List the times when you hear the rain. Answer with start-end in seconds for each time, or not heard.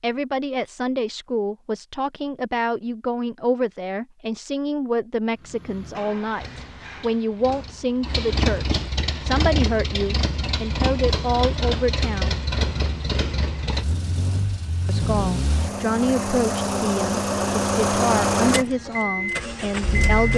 not heard.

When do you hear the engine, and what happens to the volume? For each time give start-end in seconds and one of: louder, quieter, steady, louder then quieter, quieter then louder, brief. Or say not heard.
5.3-20.3 louder.